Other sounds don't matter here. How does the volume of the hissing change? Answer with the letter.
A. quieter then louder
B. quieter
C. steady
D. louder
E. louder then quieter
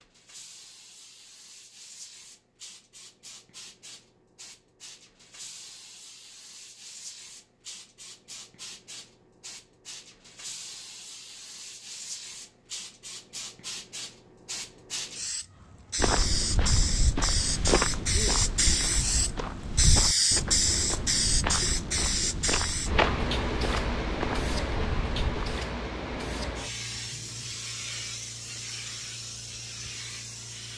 E.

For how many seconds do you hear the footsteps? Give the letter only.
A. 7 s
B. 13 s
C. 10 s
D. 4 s
C.